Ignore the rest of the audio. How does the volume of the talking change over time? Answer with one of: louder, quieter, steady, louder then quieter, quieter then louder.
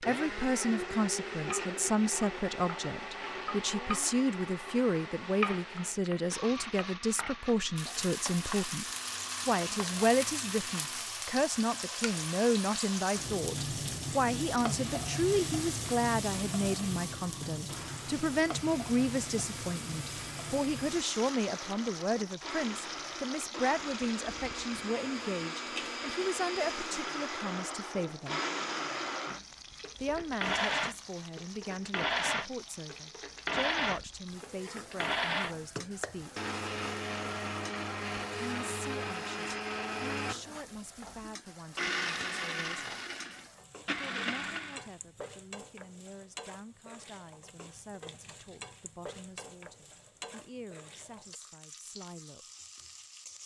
quieter.